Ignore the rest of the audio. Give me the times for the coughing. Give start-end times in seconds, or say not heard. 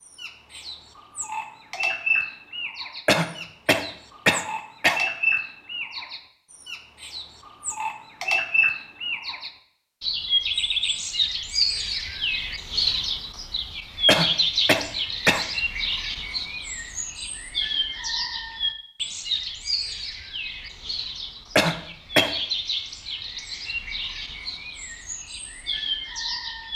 3.0-5.0, 14.1-15.4, 21.6-22.4.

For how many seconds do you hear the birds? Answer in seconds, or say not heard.
27 s.